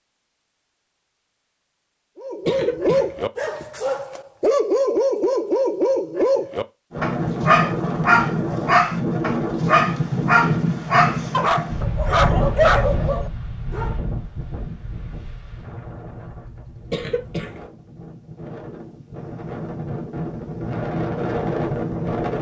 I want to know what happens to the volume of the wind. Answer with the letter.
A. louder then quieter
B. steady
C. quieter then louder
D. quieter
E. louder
C.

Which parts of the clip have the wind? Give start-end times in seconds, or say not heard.
6.9-22.3.